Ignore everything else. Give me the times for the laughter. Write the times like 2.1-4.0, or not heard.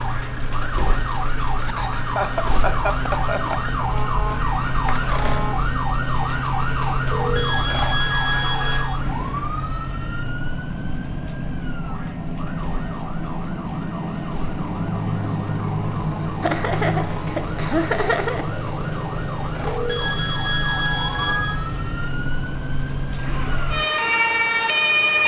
1.6-3.9, 16.4-18.4.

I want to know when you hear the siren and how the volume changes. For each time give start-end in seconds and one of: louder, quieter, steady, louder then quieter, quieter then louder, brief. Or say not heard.
0.0-25.2 quieter then louder.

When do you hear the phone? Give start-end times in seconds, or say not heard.
7.0-8.9, 19.6-21.6.